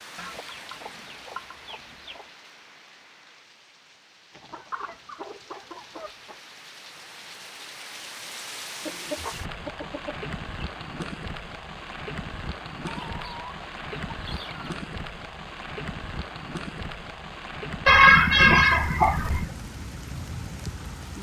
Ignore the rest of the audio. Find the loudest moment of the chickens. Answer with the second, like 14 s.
18 s.